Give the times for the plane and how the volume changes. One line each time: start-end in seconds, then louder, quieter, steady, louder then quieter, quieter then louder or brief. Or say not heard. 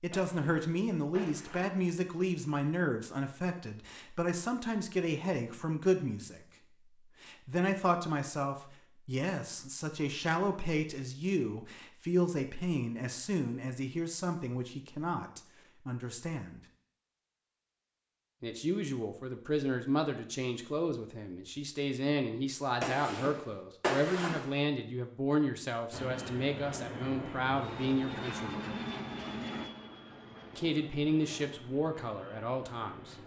25.9-33.2 quieter.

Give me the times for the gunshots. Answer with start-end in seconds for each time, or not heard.
0.1-1.8, 22.8-24.6.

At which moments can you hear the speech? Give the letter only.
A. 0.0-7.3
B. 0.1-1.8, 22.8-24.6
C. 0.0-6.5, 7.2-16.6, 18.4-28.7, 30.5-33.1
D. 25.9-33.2
C.